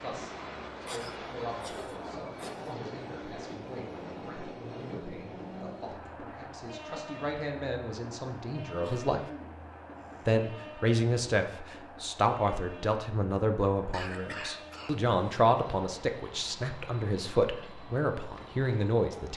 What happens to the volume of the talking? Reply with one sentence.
The volume of the talking goes up.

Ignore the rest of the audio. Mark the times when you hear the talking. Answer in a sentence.
The talking can be heard from 0.0 to 9.2 s and from 10.2 to 19.3 s.